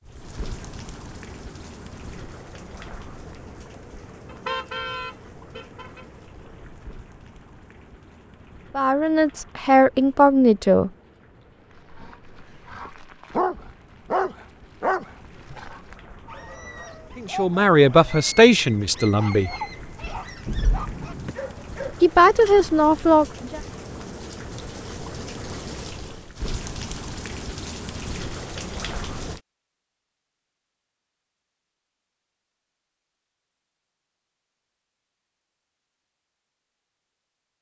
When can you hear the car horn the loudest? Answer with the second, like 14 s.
5 s.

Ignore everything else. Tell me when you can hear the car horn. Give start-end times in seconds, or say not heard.
4.2-6.0, 20.4-21.4.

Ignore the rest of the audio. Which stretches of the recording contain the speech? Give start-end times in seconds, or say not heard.
8.8-10.9, 17.1-19.5, 22.0-23.6.